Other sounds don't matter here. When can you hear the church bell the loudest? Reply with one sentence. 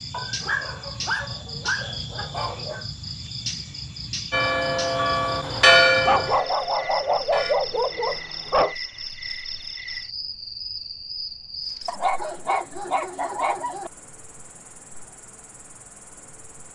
The volume of the church bell peaks at 6 seconds.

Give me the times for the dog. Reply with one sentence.
You can hear the dog from 0.1 to 2.9 s, from 6.0 to 8.8 s and from 11.8 to 13.9 s.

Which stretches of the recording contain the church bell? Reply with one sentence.
You can hear the church bell from 4.3 to 7.5 s.